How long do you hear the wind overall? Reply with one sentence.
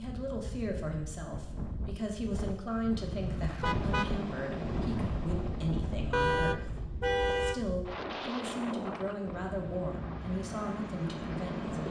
The wind can be heard for 12 seconds in total.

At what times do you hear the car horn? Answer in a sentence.
The car horn can be heard from 3.0 to 4.2 s and from 6.1 to 7.7 s.